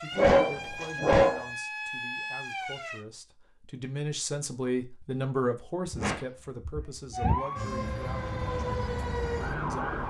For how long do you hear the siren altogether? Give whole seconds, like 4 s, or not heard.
6 s.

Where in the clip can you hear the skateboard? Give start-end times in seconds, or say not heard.
not heard.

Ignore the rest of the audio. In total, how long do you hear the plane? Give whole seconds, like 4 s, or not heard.
2 s.